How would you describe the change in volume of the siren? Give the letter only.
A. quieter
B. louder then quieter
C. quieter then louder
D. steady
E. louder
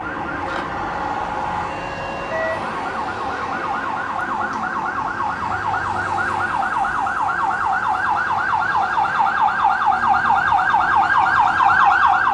E.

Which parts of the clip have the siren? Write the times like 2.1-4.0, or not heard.
0.0-12.2.